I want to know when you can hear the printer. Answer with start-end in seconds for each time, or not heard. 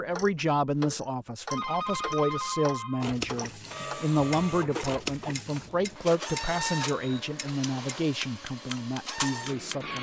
3.0-9.9.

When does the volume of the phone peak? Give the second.
2 s.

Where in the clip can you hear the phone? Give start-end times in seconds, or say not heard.
1.5-3.1, 6.5-7.2.